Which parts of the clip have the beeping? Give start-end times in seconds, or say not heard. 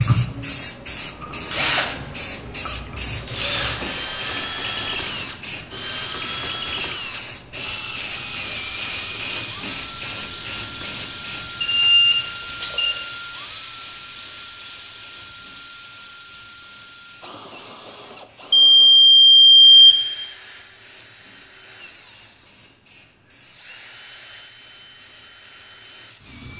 3.5-5.1, 11.6-12.9, 18.5-20.0.